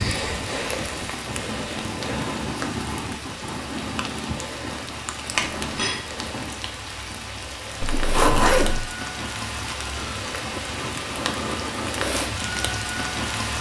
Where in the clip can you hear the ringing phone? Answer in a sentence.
You can hear the ringing phone from 5.3 to 6.0 s.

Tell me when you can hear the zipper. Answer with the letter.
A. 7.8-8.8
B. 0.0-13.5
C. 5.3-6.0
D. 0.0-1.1
A.